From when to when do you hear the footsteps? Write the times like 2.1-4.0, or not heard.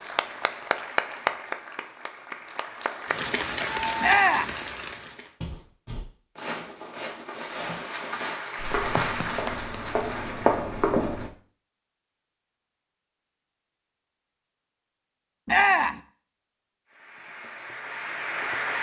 5.4-11.3.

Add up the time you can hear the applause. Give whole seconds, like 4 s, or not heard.
11 s.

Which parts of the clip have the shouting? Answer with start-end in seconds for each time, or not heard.
4.0-4.5, 15.4-16.0.